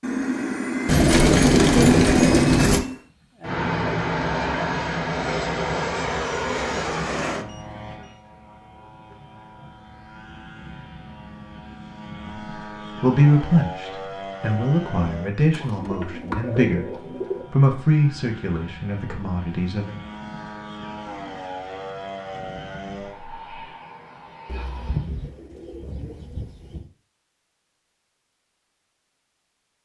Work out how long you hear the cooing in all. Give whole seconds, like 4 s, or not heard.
6 s.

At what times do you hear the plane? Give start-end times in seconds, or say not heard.
0.0-25.1.